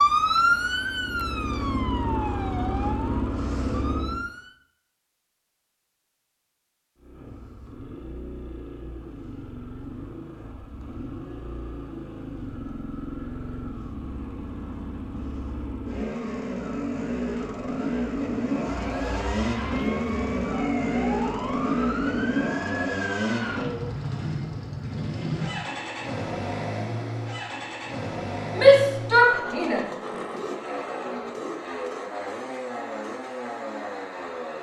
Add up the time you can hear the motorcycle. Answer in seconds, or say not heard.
32 s.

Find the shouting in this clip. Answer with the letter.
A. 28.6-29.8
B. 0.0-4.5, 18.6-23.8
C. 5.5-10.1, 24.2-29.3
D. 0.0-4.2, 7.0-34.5
A.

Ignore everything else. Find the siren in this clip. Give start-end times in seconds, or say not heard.
0.0-4.5, 18.6-23.8.